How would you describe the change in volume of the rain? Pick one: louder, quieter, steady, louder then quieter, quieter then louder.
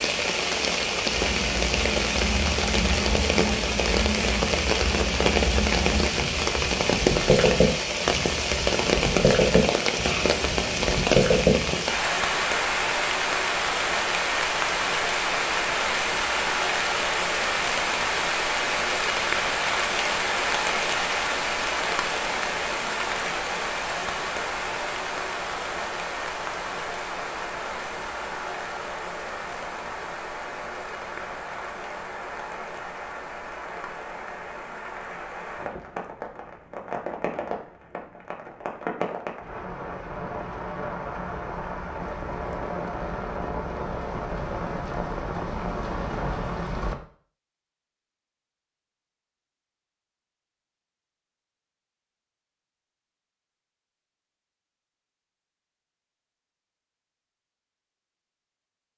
quieter.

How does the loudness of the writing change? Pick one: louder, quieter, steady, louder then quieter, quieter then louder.
louder.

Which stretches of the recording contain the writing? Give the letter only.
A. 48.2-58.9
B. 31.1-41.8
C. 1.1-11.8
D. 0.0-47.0
C.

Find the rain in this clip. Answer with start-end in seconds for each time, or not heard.
0.0-47.0.